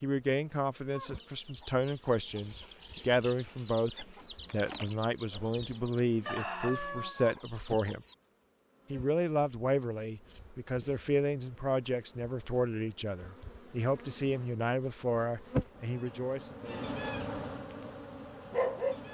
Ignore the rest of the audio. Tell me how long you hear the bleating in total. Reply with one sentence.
You can't hear the bleating here.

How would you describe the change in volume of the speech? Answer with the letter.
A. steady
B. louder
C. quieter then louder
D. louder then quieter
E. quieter
A.